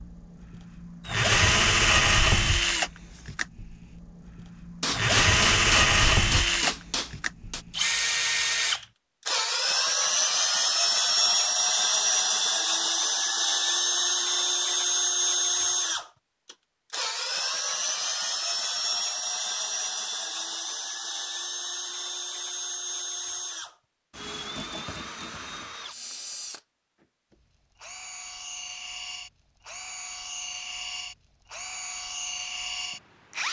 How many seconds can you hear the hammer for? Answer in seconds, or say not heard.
3 s.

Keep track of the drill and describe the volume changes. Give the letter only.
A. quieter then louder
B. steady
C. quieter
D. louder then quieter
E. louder
C.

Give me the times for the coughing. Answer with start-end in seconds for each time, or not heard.
not heard.